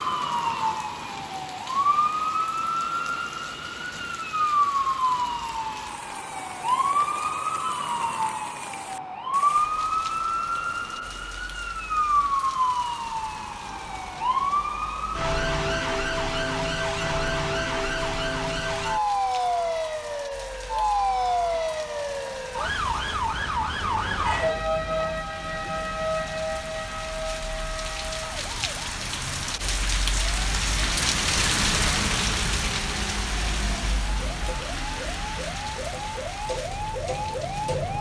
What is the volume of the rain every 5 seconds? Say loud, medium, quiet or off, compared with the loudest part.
quiet, quiet, quiet, quiet, quiet, medium, loud, medium.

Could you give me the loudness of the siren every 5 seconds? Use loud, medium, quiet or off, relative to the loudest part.
loud, loud, loud, loud, loud, medium, quiet, medium.